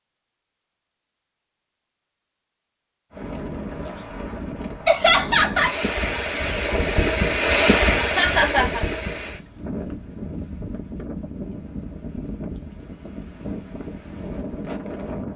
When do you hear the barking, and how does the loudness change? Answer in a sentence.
You can't hear the barking here.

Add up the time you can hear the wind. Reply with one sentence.
You can hear the wind for 12 seconds altogether.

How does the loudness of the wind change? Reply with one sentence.
The volume of the wind goes up, then down.